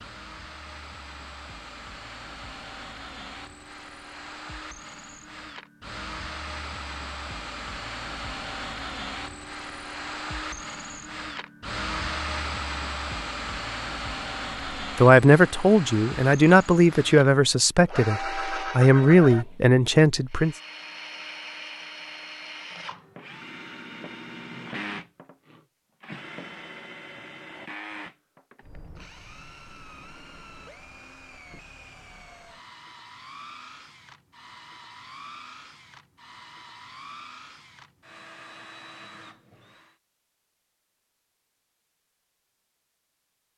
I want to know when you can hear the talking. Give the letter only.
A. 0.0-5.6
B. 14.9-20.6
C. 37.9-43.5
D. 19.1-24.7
B.